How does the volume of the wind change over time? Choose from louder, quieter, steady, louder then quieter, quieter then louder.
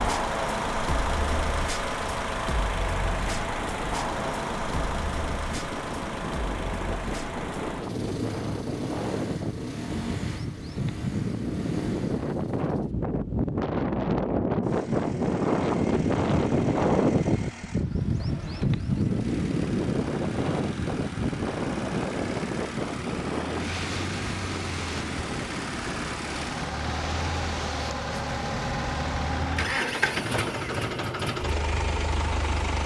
louder then quieter.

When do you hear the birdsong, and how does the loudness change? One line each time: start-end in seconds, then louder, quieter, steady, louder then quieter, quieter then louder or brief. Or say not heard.
not heard.